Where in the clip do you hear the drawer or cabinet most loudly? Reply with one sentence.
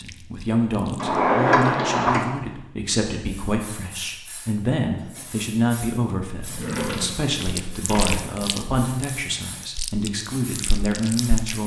The loudest moment of the drawer or cabinet is at 1 second.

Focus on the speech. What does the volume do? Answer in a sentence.
The loudness of the speech stays about the same.